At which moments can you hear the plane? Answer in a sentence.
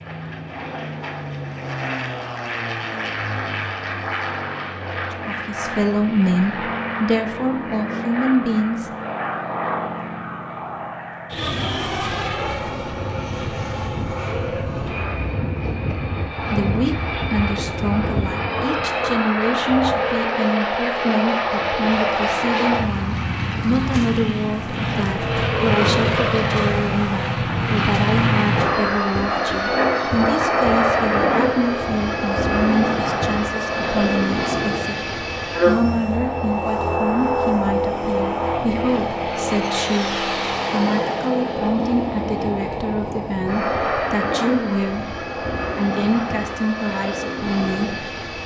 The plane can be heard from 0.0 to 48.4 s.